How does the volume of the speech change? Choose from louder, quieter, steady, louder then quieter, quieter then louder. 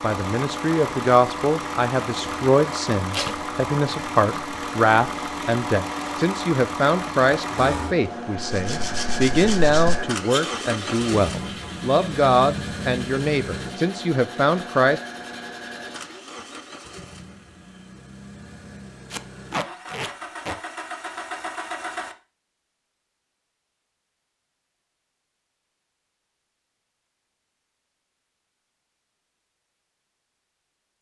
steady.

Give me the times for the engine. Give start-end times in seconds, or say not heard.
0.0-22.1.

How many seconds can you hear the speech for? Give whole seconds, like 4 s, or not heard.
15 s.